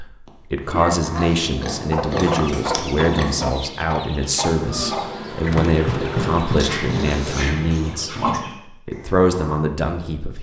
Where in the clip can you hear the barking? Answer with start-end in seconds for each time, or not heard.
0.2-1.4, 6.7-8.2.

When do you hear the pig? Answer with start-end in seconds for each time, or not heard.
1.0-3.5, 6.5-8.6.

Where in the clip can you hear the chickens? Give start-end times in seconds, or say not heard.
1.8-9.6.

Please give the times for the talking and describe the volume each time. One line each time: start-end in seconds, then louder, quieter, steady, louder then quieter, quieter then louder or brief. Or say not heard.
0.0-10.3 steady.